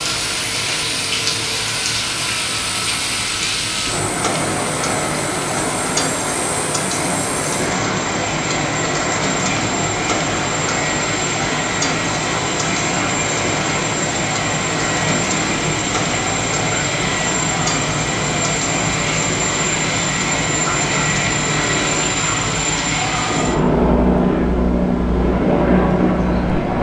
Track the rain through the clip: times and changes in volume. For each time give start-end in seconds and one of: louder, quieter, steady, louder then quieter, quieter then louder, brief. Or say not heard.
0.0-26.7 steady.